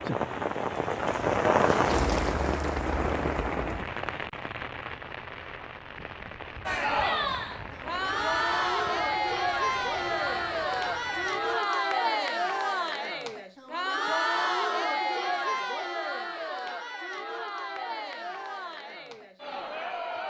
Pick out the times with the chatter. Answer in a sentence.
The chatter can be heard from 6.7 to 20.2 s.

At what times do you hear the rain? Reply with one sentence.
You can hear the rain from 0.0 to 11.8 s.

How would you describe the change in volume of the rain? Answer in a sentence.
The volume of the rain goes down.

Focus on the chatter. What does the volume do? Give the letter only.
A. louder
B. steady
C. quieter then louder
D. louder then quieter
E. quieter
E.